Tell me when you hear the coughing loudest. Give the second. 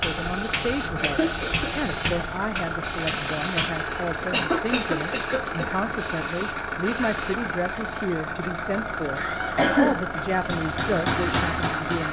10 s.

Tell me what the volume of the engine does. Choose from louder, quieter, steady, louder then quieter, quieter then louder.
steady.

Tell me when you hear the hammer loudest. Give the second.
11 s.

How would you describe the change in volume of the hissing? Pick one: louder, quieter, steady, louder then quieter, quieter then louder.
steady.